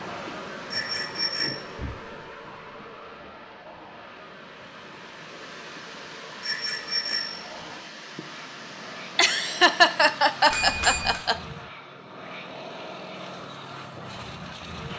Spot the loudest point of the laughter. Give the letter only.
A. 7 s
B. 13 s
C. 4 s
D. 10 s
D.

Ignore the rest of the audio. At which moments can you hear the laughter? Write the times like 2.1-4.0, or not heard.
9.2-11.3.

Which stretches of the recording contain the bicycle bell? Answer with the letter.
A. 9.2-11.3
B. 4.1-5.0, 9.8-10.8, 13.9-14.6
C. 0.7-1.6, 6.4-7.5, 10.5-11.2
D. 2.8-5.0
C.